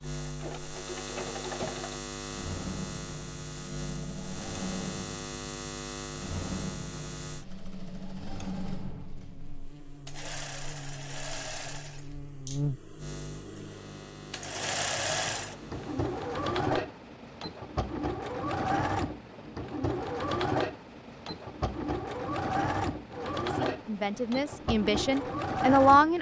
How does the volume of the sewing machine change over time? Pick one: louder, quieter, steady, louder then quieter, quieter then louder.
louder.